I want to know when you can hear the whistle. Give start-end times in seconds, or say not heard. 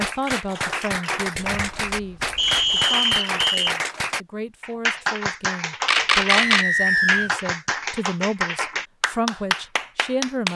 2.4-3.8, 6.2-7.3.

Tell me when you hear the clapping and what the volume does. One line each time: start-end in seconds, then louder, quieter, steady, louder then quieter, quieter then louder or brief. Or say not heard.
0.0-10.5 steady.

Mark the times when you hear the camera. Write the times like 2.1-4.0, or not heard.
1.4-2.9, 5.8-6.7.